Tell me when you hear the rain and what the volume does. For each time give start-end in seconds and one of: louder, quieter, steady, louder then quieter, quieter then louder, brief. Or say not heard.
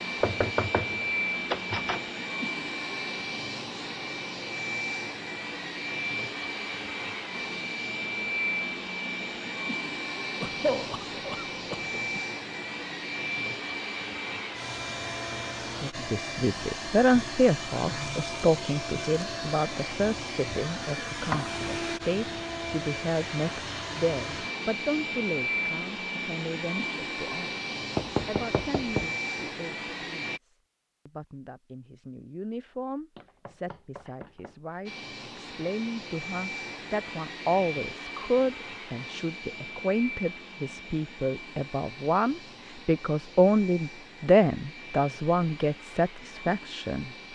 not heard.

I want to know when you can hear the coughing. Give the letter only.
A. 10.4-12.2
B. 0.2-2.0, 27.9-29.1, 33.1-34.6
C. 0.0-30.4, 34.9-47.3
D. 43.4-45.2
A.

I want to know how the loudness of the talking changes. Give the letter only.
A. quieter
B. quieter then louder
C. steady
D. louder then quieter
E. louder
B.